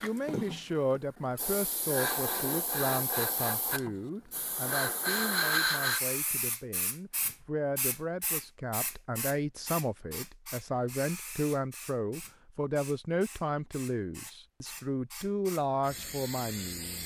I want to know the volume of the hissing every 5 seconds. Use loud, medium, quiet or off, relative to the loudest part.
loud, loud, quiet, medium.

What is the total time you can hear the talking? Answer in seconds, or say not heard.
17 s.